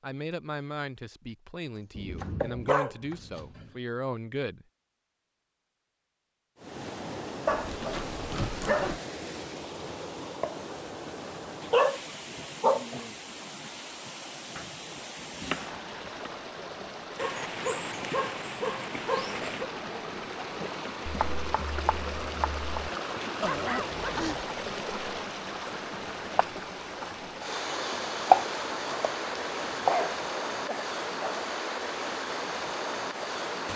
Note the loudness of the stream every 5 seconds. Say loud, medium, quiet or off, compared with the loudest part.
off, medium, medium, medium, loud, loud, loud.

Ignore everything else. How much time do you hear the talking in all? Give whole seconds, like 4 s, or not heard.
5 s.